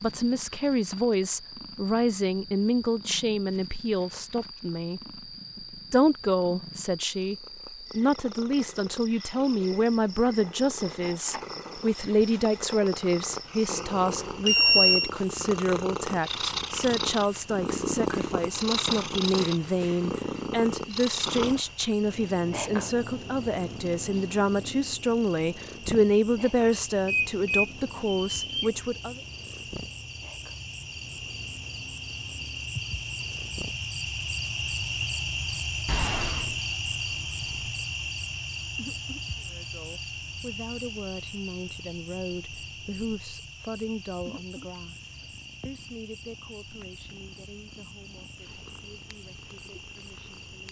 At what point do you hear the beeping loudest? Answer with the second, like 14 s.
15 s.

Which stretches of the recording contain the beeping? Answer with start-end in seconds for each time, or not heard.
14.4-15.1, 27.1-28.7, 35.9-36.5.